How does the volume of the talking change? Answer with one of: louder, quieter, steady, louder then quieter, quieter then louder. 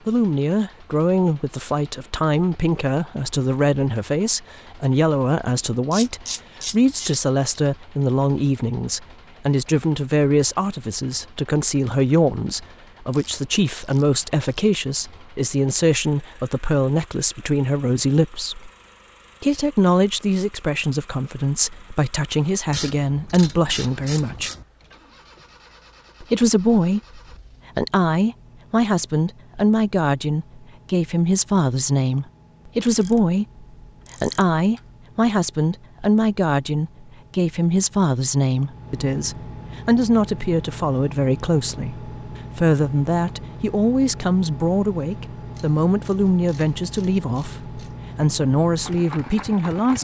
steady.